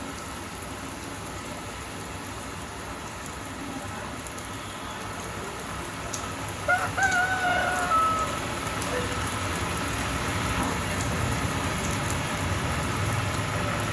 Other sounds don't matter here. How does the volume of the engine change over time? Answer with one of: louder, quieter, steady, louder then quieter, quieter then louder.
louder.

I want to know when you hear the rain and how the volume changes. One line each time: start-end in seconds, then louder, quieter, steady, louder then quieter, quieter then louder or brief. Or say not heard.
0.0-13.8 louder.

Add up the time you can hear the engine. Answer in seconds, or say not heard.
14 s.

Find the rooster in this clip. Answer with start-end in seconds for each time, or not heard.
6.7-8.2.